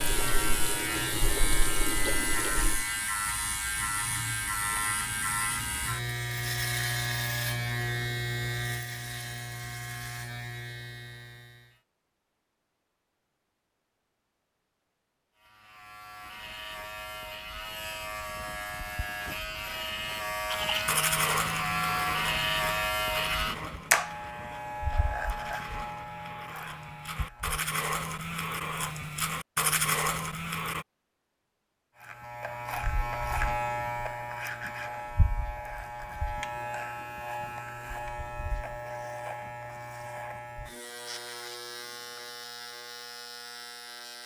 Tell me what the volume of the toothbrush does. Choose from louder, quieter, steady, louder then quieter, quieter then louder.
quieter then louder.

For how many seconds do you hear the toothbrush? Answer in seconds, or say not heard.
10 s.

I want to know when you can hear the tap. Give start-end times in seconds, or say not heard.
0.0-2.9.